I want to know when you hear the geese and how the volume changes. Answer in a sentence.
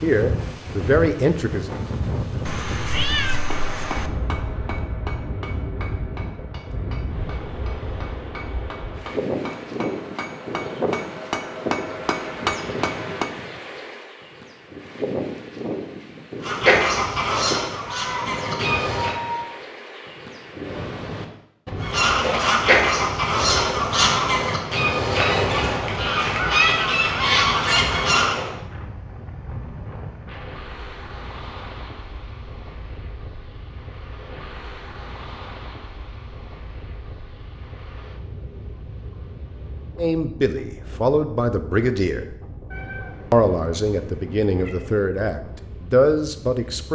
You can hear the geese briefly from 16.4 to 19.2 s; and from 21.8 to 28.5 s, at a steady volume.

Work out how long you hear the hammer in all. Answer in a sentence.
You can hear the hammer for 10 seconds altogether.